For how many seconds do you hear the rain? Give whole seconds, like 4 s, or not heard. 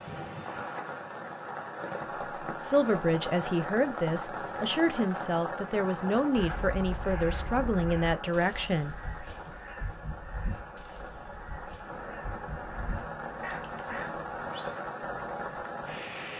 16 s.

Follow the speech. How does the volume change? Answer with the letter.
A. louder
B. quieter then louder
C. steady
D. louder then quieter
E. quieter
C.